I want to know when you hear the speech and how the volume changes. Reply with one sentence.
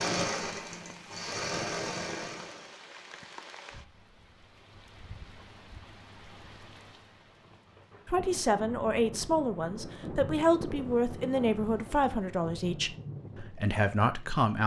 You can hear the speech from 8.1 to 14.6 s, at a steady volume.